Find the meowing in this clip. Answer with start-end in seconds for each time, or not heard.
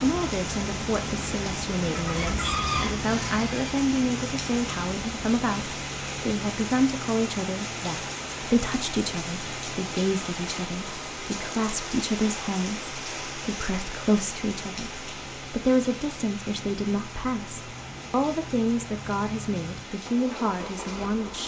not heard.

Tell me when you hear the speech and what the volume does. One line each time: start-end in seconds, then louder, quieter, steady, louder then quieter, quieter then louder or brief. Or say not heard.
0.0-21.4 steady.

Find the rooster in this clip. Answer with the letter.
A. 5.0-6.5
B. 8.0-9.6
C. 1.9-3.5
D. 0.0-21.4
C.